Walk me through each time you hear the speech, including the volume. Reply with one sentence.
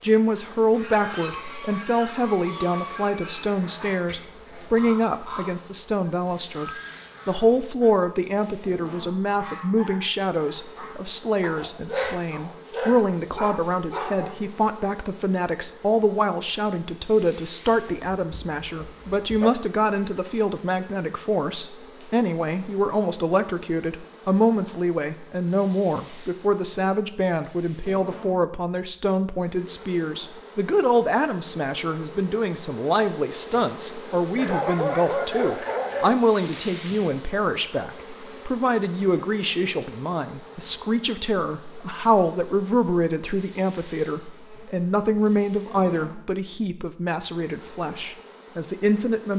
You can hear the speech from 0.0 to 49.3 s, at a steady volume.